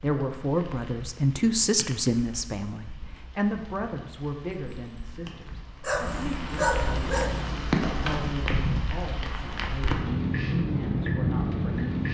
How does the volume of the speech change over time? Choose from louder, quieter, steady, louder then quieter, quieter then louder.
quieter.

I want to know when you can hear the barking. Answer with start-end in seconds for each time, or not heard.
5.8-7.3.